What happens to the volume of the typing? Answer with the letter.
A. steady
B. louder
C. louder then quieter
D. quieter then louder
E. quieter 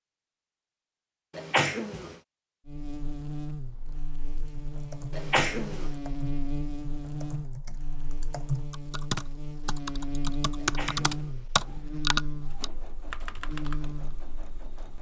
B.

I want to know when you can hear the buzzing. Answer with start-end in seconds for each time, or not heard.
2.6-14.9.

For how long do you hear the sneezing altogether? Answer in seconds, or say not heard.
3 s.